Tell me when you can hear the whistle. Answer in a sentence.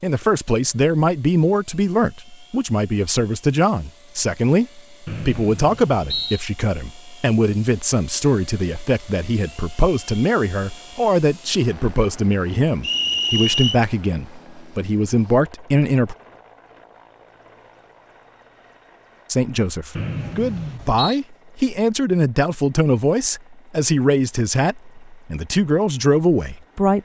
The whistle can be heard from 5.0 to 6.4 s, from 12.8 to 13.8 s and from 19.9 to 21.2 s.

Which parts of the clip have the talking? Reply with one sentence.
The talking can be heard from 0.0 to 16.1 s and from 19.3 to 27.0 s.